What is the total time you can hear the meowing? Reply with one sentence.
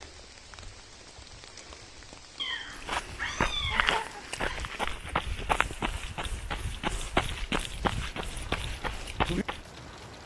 The meowing can be heard for 2 seconds in total.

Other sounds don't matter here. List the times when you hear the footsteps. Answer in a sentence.
You can hear the footsteps from 2.8 to 9.7 s.